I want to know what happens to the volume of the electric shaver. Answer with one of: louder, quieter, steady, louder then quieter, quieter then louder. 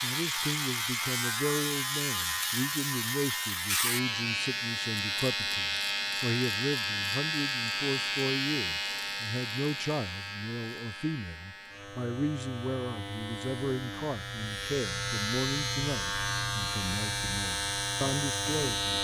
quieter then louder.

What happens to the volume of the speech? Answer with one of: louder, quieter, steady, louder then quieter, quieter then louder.
steady.